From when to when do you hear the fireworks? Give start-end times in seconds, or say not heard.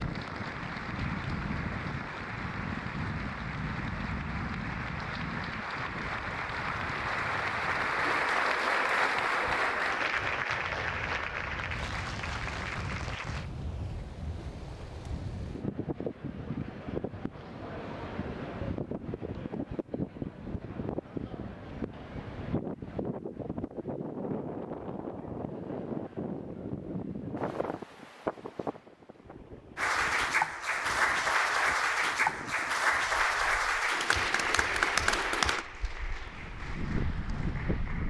not heard.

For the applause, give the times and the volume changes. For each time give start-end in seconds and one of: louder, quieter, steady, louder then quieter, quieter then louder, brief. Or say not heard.
0.0-13.5 louder then quieter
29.8-38.0 quieter.